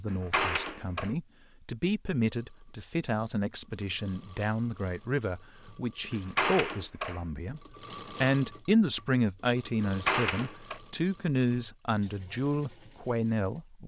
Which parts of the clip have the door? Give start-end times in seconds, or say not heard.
0.1-1.1, 6.1-7.2, 9.8-10.8.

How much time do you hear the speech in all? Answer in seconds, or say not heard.
14 s.